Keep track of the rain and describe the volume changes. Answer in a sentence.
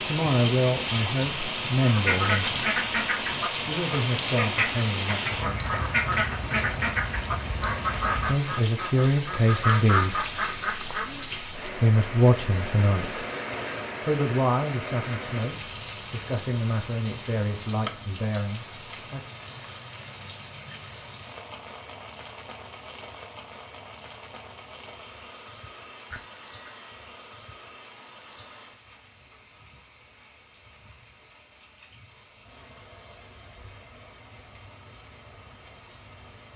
The volume of the rain goes down.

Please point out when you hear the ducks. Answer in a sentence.
The ducks can be heard from 1.8 to 11.2 s.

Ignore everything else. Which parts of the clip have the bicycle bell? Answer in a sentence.
You can hear the bicycle bell from 26.1 to 27.1 s.